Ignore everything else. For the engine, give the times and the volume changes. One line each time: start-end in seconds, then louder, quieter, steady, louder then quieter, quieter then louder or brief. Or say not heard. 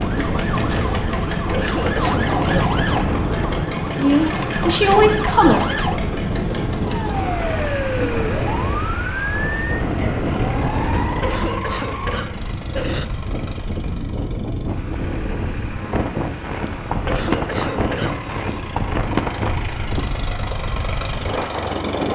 0.0-22.1 quieter then louder.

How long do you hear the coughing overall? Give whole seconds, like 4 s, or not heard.
4 s.